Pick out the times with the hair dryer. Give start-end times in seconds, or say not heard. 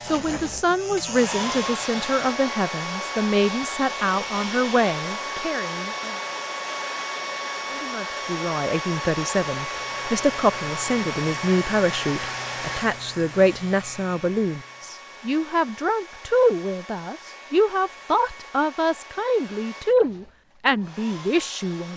0.0-21.9.